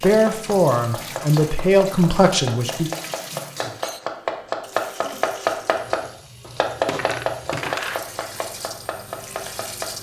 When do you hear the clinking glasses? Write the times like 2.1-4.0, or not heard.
6.7-8.4.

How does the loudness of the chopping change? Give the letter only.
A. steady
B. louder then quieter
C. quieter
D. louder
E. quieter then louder
B.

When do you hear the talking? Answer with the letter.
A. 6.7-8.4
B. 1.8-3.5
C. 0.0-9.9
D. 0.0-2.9
D.